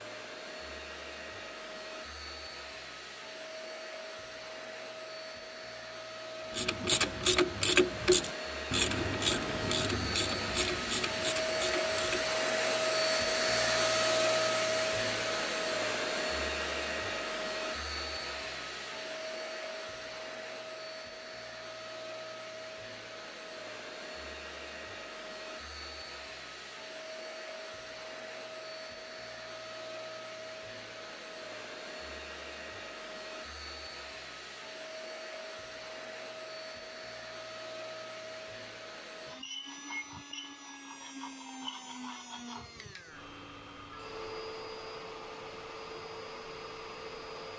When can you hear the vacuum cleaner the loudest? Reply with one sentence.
The volume of the vacuum cleaner peaks at 14 seconds.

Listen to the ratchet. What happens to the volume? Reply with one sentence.
The volume of the ratchet goes down.